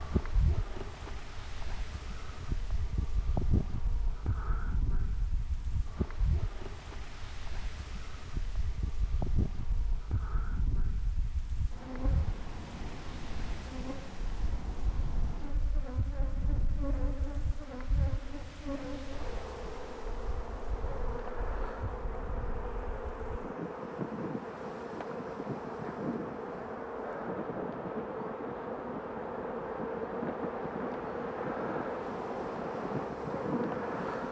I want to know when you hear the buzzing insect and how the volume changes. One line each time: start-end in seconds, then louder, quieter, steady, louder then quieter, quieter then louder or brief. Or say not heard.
0.0-34.2 louder.